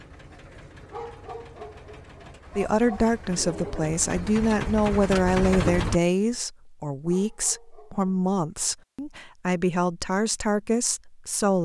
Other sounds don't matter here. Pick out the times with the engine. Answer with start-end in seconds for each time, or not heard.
0.0-6.0.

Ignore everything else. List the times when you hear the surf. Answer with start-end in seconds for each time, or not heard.
not heard.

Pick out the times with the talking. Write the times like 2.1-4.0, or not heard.
2.5-11.6.